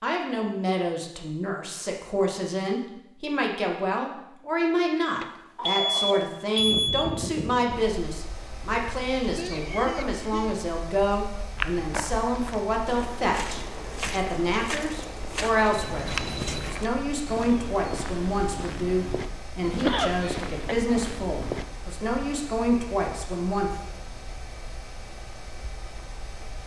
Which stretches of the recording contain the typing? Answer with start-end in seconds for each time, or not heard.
not heard.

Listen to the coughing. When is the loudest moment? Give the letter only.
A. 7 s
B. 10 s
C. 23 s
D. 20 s
D.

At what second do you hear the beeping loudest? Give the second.
7 s.